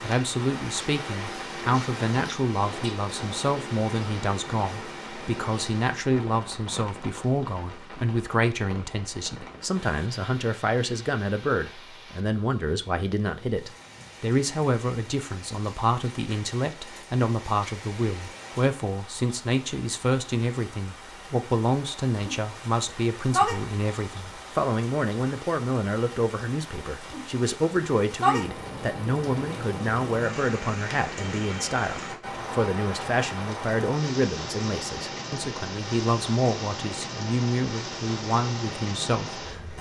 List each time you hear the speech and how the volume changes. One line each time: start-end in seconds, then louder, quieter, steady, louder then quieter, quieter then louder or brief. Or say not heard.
0.0-39.7 steady.